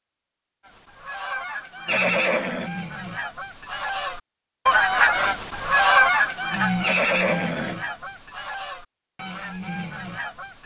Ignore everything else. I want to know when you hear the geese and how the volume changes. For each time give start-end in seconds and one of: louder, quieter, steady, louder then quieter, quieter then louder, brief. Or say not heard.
0.7-10.6 louder then quieter.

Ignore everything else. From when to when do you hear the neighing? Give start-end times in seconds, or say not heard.
1.9-2.7, 6.8-7.8.